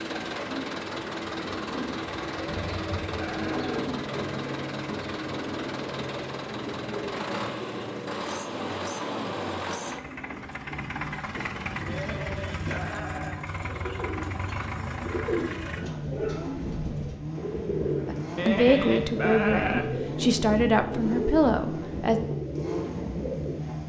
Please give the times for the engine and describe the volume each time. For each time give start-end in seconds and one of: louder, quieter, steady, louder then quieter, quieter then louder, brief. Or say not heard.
0.0-23.8 steady.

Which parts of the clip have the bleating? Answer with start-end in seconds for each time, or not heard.
2.4-3.9, 11.8-13.4, 18.4-19.9.